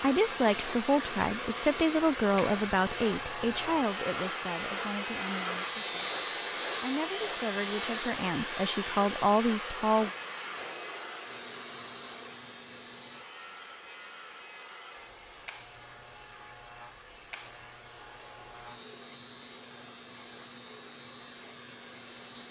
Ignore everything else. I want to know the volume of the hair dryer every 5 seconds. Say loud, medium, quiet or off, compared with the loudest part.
loud, loud, medium, quiet, quiet.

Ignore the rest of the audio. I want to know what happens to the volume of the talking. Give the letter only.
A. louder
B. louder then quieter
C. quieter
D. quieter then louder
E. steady
D.